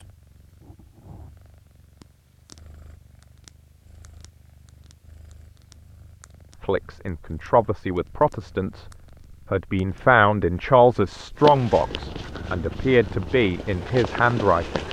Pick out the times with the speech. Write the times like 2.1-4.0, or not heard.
6.6-8.8, 9.5-14.8.